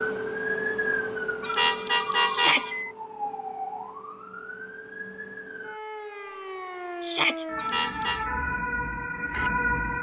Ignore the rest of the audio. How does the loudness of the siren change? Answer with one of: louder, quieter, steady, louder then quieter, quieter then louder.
quieter then louder.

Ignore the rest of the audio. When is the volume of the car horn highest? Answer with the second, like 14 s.
2 s.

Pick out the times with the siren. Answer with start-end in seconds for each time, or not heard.
0.0-9.9.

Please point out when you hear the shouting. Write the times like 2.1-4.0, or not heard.
2.3-2.8, 7.0-7.5.